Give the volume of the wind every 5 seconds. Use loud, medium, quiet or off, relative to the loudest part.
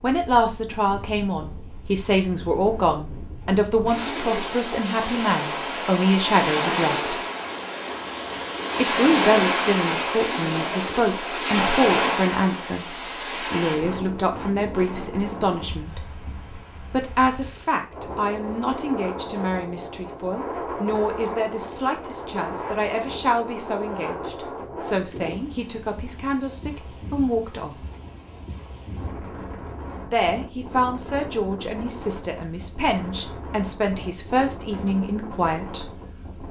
medium, loud, loud, medium, medium, quiet, quiet, quiet.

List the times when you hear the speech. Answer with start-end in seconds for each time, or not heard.
0.0-7.2, 8.8-16.0, 16.9-27.8, 30.1-35.9.